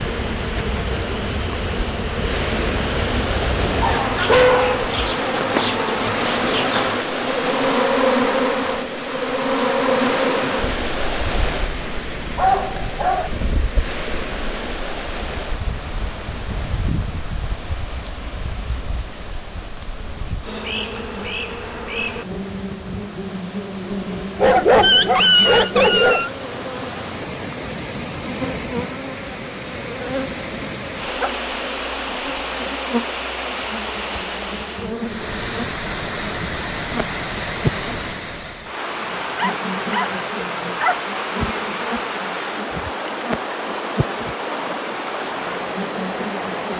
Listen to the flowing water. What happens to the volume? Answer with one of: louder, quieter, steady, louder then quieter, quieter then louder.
quieter then louder.